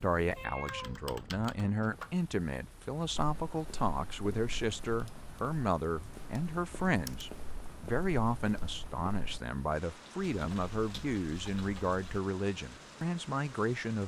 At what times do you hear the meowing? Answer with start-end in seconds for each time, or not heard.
0.3-1.1.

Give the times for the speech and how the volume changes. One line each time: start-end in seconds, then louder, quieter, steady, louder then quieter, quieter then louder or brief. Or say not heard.
0.0-14.0 steady.